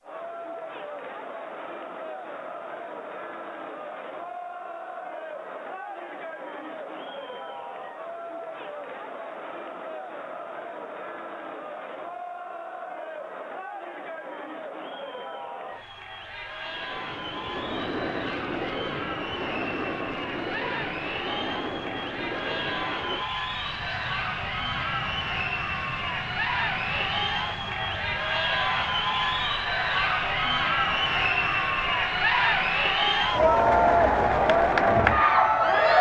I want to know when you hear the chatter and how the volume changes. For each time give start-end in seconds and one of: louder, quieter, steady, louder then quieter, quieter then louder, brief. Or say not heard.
0.0-35.9 louder.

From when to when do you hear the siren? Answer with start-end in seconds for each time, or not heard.
not heard.